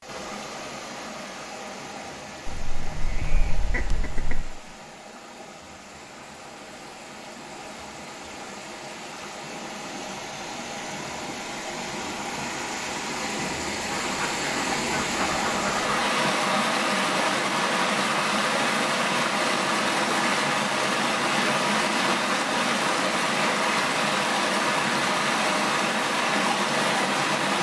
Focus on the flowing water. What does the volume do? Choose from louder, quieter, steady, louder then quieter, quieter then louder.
louder.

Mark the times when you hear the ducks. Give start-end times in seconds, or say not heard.
2.5-4.5, 13.9-16.0.